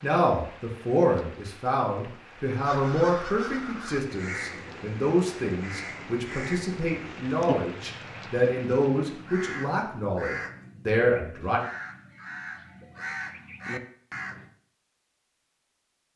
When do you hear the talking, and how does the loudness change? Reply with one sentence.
You can hear the talking from 0.0 to 11.6 s, at a steady volume.